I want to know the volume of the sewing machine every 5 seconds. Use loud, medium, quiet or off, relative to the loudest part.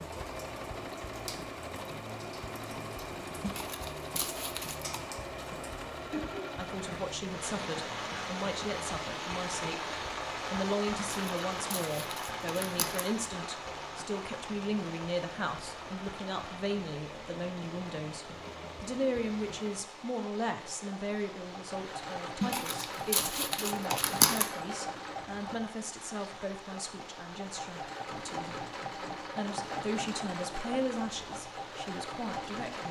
loud, loud, medium, medium, loud, loud, loud.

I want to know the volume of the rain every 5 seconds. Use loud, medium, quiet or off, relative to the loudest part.
medium, loud, loud, medium, medium, medium, medium.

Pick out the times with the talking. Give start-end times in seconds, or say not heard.
6.5-9.9, 10.5-28.6, 29.4-32.8.